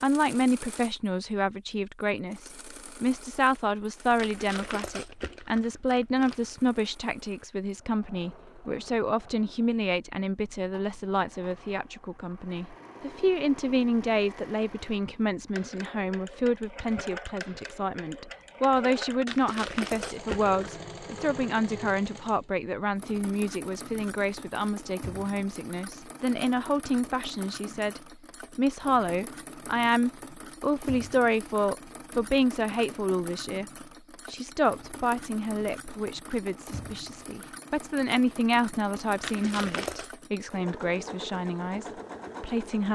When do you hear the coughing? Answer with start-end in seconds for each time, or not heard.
not heard.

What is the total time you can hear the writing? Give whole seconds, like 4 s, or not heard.
not heard.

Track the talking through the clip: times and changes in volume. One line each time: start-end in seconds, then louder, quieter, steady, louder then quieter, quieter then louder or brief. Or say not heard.
0.0-42.9 steady.